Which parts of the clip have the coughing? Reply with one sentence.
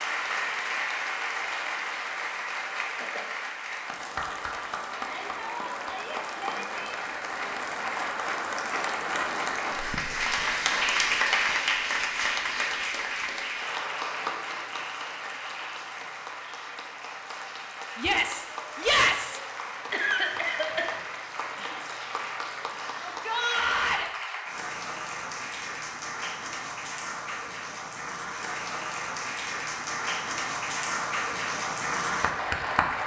You can hear the coughing from 19.9 to 21.0 s.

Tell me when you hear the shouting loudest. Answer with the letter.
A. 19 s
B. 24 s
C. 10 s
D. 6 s
A.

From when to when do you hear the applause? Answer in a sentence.
The applause can be heard from 0.0 to 33.0 s.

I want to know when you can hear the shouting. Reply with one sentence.
The shouting can be heard from 5.0 to 7.0 s, from 17.9 to 19.4 s and from 23.1 to 24.1 s.